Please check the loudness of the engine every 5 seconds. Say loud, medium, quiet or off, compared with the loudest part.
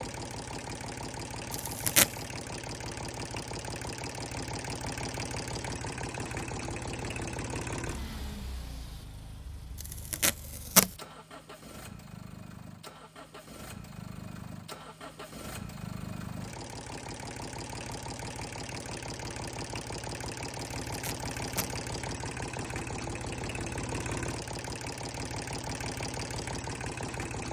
loud, loud, medium, loud, loud, loud.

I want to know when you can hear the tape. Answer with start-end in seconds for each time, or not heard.
1.5-2.1, 9.8-10.9, 20.9-21.7.